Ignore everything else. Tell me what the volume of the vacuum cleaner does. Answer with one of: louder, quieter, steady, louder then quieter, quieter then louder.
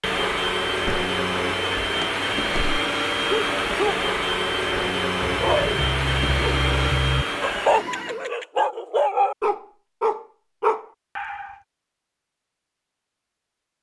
steady.